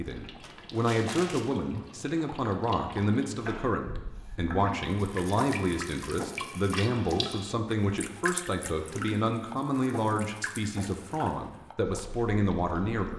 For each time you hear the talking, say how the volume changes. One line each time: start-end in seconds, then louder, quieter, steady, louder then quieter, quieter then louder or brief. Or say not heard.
0.0-13.1 steady.